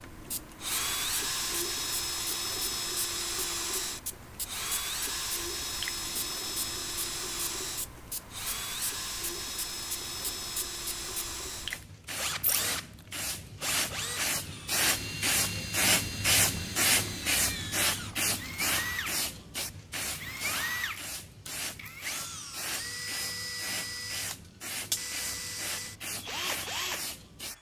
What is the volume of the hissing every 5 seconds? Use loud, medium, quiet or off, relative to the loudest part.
quiet, quiet, medium, loud, medium, medium.